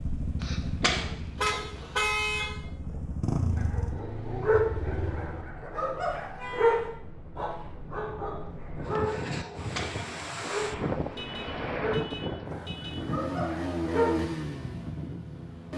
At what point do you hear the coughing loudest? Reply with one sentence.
The loudest moment of the coughing is at 1 second.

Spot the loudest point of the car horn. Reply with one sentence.
The loudest moment of the car horn is at 2 seconds.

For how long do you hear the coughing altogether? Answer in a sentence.
You can hear the coughing for 2 seconds altogether.